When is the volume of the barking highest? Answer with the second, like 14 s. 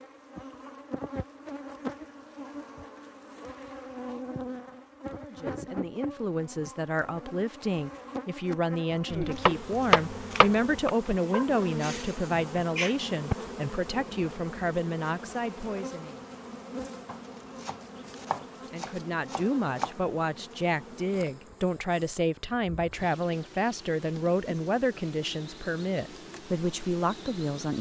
13 s.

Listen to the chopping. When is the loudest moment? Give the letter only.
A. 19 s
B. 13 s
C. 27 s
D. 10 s
D.